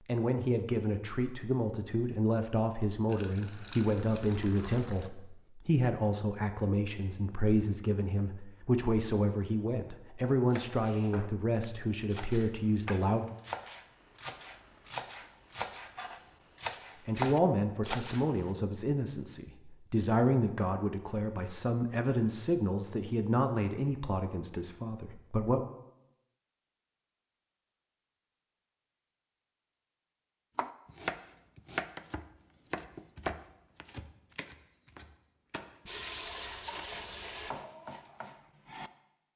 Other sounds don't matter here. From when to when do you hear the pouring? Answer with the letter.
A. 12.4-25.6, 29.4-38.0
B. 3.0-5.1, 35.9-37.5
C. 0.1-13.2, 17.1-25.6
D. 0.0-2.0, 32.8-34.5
B.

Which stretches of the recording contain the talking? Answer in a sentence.
The talking can be heard from 0.1 to 13.2 s and from 17.1 to 25.6 s.